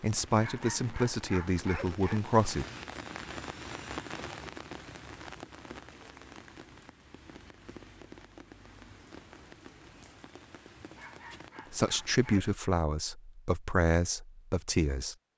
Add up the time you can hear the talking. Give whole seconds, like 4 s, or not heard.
6 s.